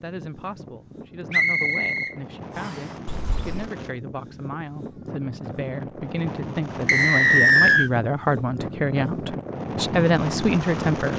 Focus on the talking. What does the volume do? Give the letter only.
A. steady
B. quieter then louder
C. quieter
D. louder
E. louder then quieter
D.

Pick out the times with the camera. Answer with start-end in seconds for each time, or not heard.
3.0-3.7.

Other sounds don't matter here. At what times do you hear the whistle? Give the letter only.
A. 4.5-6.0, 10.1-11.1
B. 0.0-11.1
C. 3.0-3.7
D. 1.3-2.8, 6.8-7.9
D.